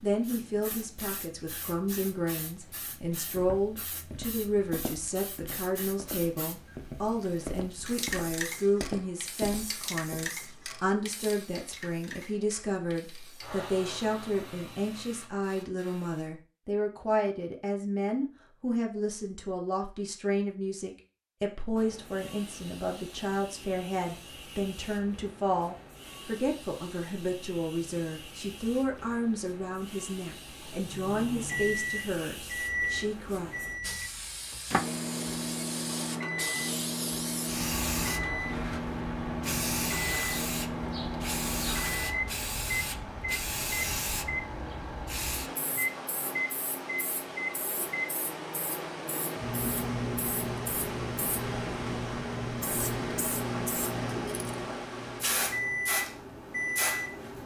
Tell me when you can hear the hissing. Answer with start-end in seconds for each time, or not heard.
0.0-16.3, 21.8-57.4.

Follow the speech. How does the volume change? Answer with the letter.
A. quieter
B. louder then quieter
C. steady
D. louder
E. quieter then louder
C.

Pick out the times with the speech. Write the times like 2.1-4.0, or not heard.
0.0-33.5.